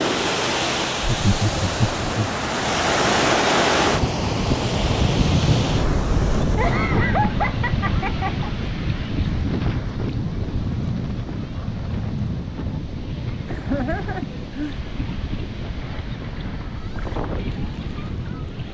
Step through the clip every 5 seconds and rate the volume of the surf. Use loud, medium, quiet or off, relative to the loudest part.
loud, loud, medium, medium.